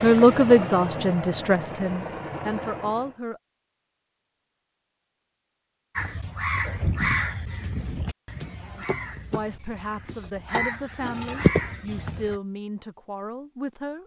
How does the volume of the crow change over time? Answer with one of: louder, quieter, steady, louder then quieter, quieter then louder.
quieter then louder.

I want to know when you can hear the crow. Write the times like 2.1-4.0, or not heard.
6.0-12.3.